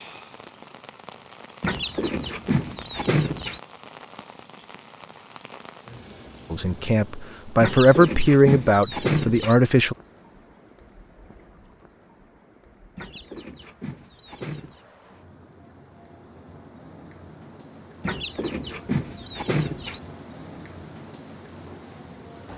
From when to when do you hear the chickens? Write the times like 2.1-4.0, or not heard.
1.6-3.6, 7.6-9.6, 12.9-14.8, 18.0-20.0.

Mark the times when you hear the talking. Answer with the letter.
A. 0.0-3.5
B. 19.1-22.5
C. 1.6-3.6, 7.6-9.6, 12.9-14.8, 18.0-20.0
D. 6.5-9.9
D.